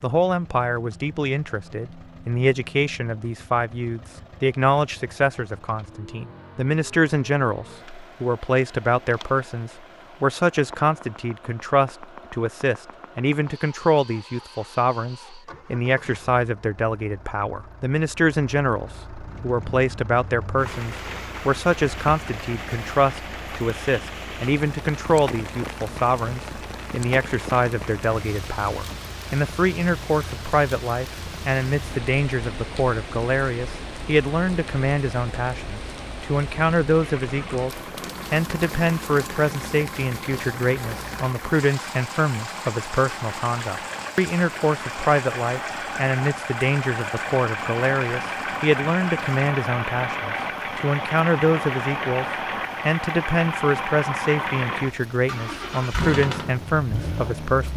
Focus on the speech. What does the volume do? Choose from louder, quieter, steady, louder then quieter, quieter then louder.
steady.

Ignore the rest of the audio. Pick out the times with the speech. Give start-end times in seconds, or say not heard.
0.0-52.2, 52.9-57.7.